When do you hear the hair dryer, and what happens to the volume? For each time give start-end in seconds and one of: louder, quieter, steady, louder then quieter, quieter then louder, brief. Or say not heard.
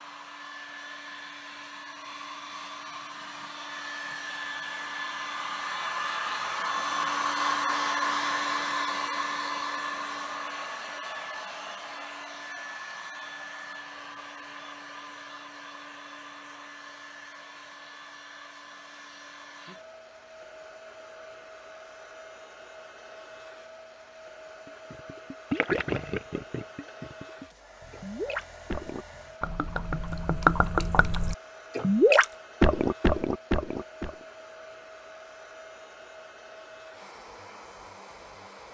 0.0-38.6 quieter.